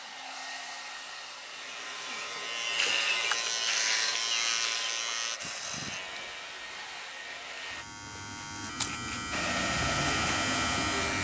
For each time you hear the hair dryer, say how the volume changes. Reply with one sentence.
The hair dryer can be heard from 0.0 to 7.8 s, at a steady volume; and briefly from 9.3 to 11.2 s.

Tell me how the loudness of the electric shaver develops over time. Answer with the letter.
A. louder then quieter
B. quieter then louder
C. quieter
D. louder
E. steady
B.